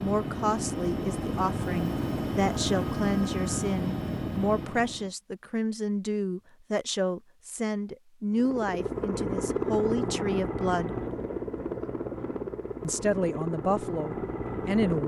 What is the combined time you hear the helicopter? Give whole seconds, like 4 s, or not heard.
12 s.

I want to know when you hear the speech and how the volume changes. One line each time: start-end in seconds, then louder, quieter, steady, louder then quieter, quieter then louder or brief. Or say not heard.
0.0-10.9 steady
12.8-15.0 brief.